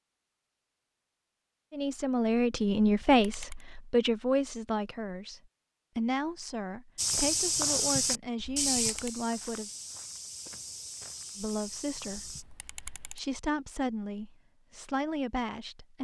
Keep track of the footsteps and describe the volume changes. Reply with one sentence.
The volume of the footsteps goes down.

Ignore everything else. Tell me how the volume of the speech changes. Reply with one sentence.
The volume of the speech goes down.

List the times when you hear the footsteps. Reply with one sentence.
You can hear the footsteps from 7.0 to 12.4 s.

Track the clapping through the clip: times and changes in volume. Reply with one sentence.
You can't hear the clapping here.